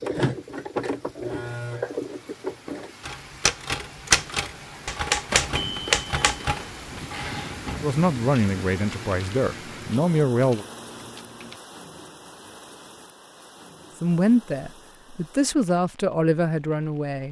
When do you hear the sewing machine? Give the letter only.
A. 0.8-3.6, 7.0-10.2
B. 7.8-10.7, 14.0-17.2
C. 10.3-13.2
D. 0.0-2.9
D.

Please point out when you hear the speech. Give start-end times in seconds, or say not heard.
7.8-10.7, 14.0-17.2.